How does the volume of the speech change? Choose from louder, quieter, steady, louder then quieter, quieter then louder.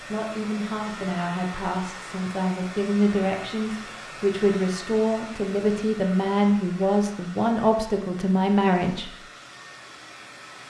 louder.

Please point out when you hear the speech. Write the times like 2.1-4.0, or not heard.
0.0-9.2.